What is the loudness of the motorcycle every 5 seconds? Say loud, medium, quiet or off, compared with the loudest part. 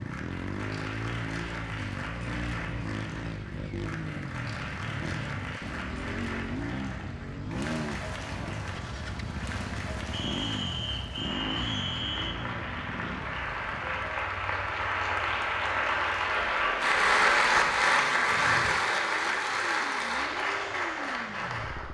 loud, loud, loud, quiet, medium.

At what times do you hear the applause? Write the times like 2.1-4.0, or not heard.
0.0-21.8.